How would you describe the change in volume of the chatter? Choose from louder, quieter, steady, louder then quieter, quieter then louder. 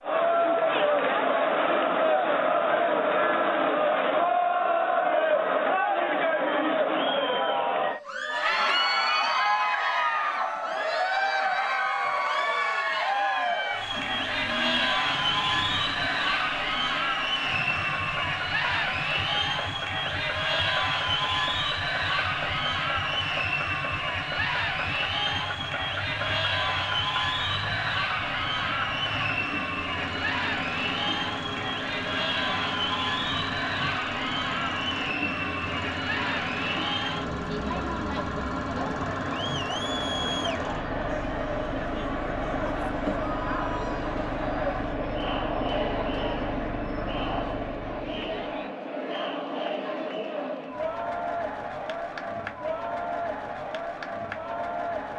quieter.